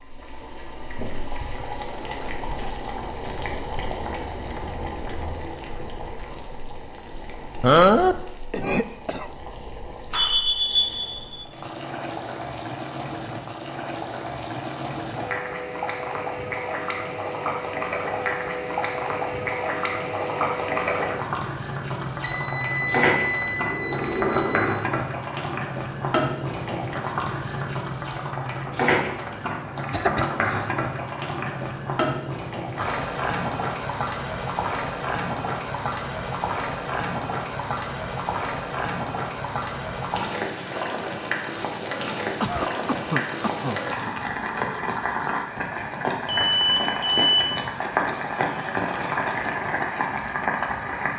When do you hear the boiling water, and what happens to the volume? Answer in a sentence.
The boiling water can be heard from 0.0 to 51.1 s, getting louder.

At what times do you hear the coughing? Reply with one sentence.
You can hear the coughing from 7.6 to 9.3 s, from 29.9 to 30.7 s and from 42.4 to 43.8 s.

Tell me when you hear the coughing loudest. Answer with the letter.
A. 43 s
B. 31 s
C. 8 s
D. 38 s
C.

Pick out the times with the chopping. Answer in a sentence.
The chopping can't be heard in this clip.